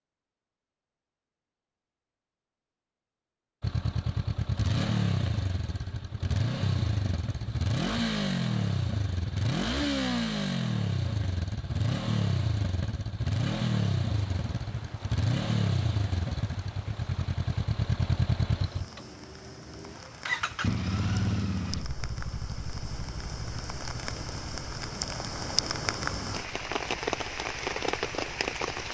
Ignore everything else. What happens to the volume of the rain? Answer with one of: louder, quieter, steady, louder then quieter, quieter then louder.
louder.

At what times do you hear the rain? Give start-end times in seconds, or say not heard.
14.1-28.8.